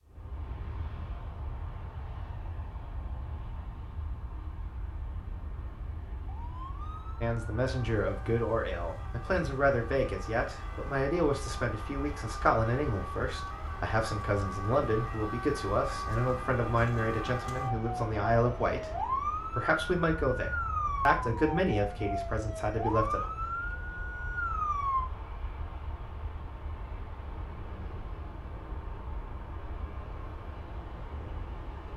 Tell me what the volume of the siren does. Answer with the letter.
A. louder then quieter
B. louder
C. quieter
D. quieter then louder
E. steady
B.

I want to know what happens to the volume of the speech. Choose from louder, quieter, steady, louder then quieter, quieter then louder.
steady.